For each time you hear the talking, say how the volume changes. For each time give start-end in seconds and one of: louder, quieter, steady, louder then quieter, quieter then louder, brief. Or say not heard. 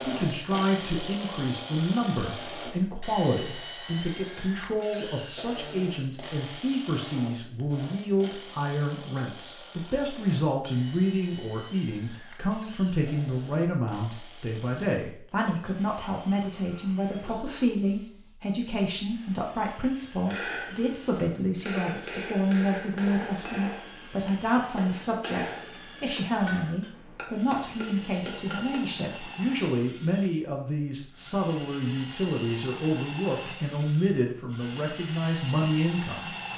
0.0-36.3 steady.